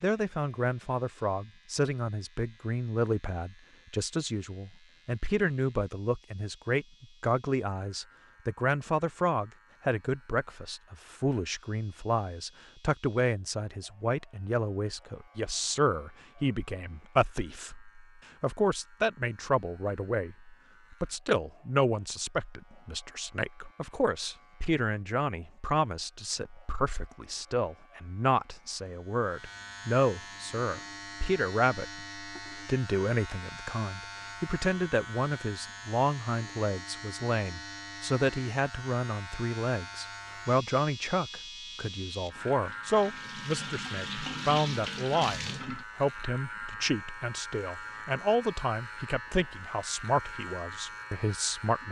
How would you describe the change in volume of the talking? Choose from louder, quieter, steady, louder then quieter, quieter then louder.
steady.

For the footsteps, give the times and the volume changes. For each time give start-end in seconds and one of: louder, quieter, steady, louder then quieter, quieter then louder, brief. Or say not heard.
not heard.